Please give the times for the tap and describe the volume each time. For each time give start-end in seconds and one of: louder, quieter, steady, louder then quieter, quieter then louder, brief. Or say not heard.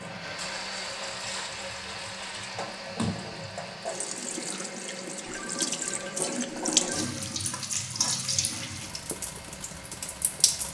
0.0-10.6 louder then quieter.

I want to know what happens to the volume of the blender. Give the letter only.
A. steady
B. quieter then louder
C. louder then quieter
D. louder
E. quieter
E.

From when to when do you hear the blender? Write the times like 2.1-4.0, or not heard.
0.0-10.6.